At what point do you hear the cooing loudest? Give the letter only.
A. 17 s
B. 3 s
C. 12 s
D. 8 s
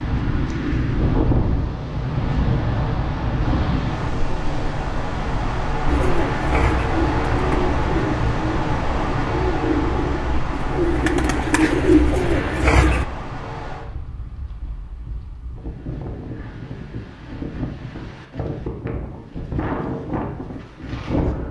C.